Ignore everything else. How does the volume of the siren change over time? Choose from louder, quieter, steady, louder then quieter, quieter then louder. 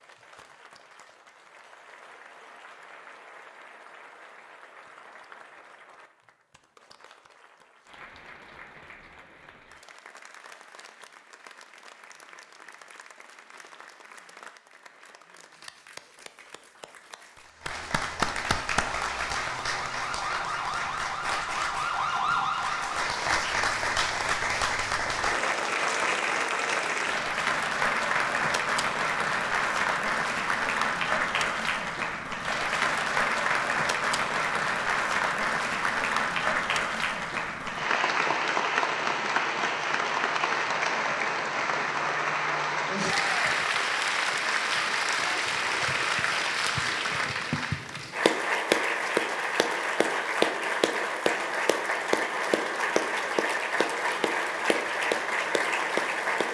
louder.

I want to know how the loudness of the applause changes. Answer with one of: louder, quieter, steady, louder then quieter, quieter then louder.
louder.